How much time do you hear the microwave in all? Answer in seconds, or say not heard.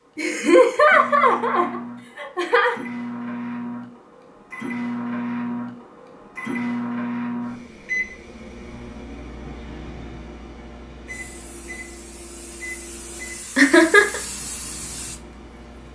16 s.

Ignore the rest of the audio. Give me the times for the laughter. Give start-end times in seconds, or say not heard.
0.1-2.8, 13.6-14.2.